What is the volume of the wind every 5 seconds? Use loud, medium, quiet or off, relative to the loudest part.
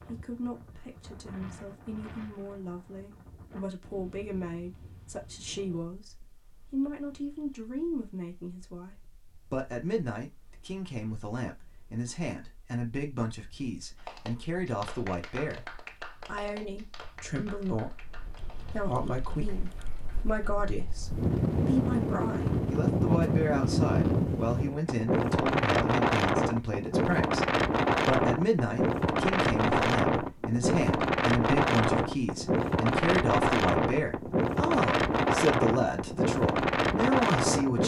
quiet, quiet, quiet, quiet, loud, loud, loud, loud.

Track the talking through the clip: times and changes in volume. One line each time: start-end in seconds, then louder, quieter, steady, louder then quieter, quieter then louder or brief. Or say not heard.
0.1-37.8 louder.